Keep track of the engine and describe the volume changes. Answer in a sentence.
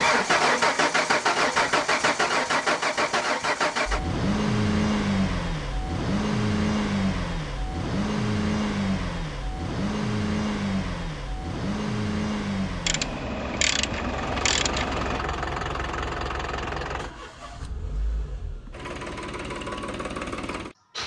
The loudness of the engine goes down.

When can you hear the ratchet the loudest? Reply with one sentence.
The volume of the ratchet peaks at 14 seconds.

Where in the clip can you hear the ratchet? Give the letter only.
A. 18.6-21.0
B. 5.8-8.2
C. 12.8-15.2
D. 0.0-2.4
C.